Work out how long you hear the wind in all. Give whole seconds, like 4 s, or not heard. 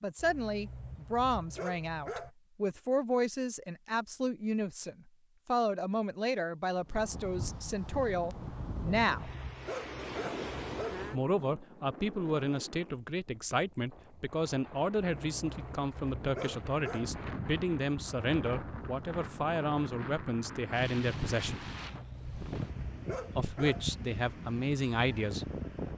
19 s.